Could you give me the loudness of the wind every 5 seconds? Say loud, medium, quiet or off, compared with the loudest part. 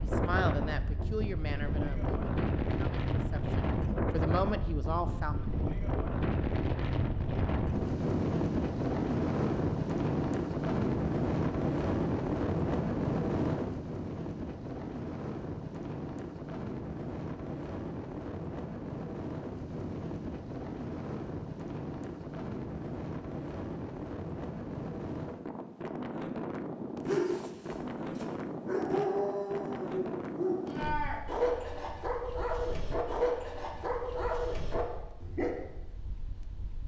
loud, loud, loud, medium, medium, medium, quiet, quiet.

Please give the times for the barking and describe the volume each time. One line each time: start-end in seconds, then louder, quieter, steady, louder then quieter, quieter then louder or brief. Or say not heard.
27.1-35.5 steady.